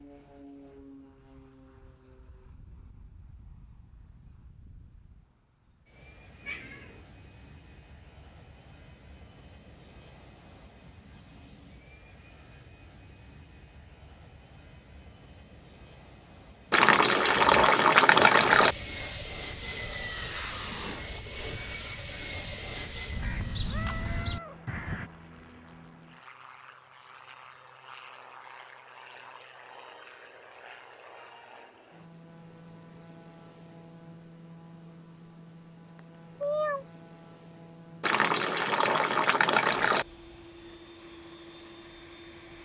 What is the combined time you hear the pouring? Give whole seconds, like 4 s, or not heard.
4 s.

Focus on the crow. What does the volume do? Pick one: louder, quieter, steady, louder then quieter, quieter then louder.
louder.